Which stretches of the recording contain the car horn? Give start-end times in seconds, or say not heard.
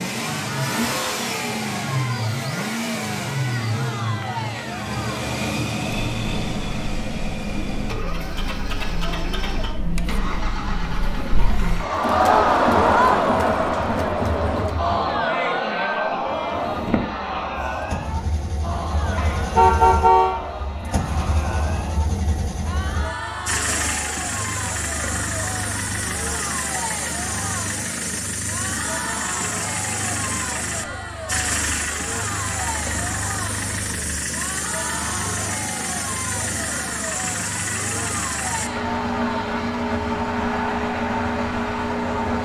19.1-20.4.